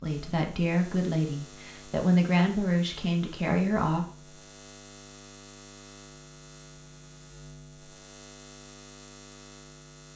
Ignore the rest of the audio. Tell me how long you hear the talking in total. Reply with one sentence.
The talking can be heard for 4 seconds in total.